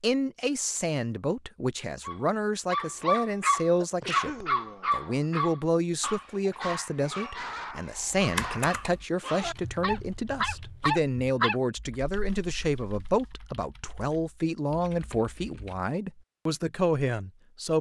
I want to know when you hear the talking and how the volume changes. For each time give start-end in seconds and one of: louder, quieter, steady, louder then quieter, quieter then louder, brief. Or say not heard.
0.0-17.7 steady.